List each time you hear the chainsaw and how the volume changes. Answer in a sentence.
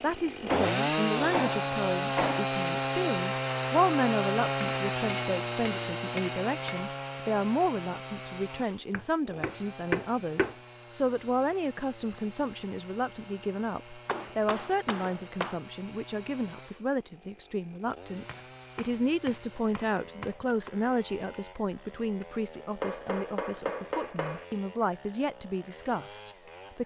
You can hear the chainsaw from 0.0 to 26.8 s, getting quieter.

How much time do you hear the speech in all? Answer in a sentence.
You can hear the speech for 27 seconds altogether.